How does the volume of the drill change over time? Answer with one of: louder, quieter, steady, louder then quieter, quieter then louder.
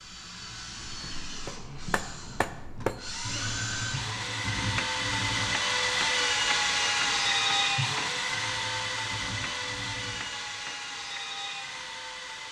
louder then quieter.